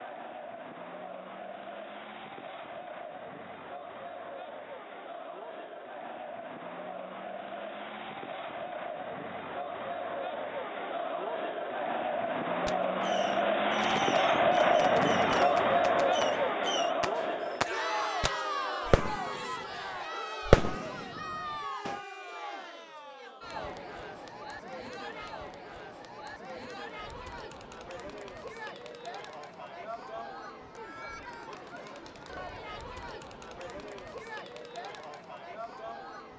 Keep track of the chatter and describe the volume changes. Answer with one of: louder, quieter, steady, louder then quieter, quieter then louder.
louder then quieter.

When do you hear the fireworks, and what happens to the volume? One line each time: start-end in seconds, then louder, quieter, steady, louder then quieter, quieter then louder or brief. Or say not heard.
12.7-19.6 louder
20.4-22.0 brief.